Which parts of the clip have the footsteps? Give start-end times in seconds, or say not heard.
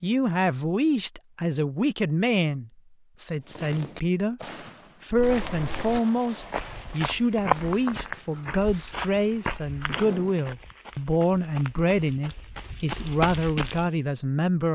5.1-13.9.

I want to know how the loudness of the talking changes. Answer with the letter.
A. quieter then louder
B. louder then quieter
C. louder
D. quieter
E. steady
E.